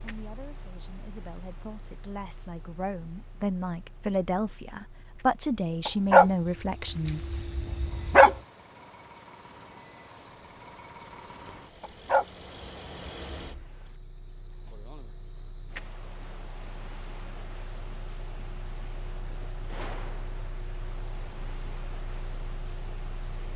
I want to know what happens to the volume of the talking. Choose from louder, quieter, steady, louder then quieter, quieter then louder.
louder.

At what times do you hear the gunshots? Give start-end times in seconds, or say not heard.
19.6-20.4.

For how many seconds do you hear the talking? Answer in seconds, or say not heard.
7 s.